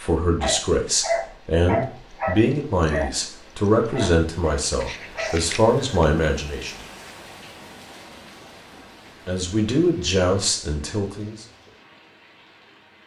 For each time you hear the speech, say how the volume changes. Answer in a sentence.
You can hear the speech from 0.0 to 6.8 s, at a steady volume; and briefly from 9.2 to 11.3 s.